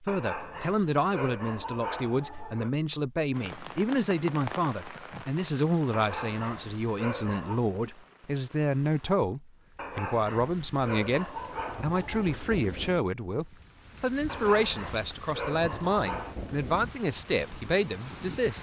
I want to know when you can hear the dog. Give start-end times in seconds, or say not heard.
0.1-2.7, 5.9-7.6, 9.8-12.4, 14.2-16.4.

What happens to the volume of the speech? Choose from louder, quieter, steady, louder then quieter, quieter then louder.
steady.